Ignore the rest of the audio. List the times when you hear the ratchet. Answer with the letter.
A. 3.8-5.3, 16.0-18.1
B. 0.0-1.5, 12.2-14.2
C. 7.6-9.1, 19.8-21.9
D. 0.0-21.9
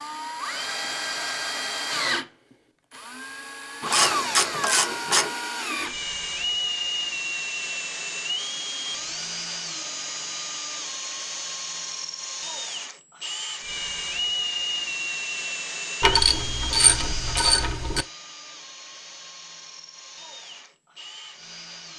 A.